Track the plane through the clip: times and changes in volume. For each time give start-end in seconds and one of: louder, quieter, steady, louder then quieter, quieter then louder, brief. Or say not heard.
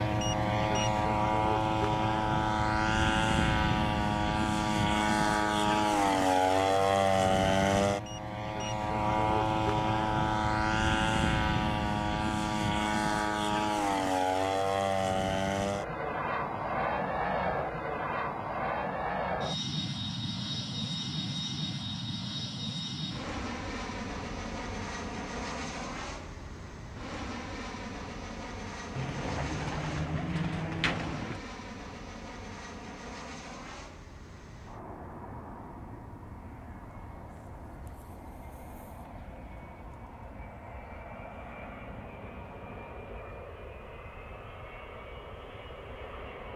0.0-46.5 quieter.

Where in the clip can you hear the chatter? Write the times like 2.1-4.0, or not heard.
not heard.